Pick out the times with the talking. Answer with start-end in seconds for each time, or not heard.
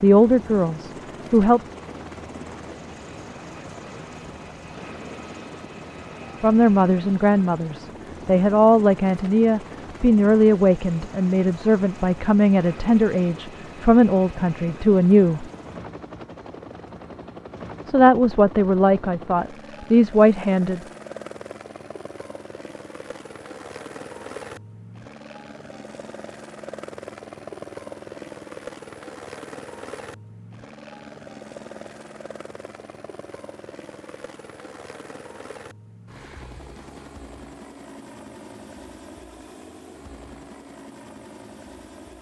0.0-1.6, 6.4-15.4, 17.9-20.8.